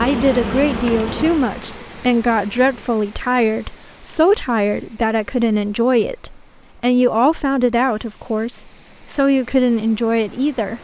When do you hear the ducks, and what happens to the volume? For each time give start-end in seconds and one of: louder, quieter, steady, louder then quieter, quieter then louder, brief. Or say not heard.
not heard.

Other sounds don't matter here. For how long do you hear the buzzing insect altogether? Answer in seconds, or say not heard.
3 s.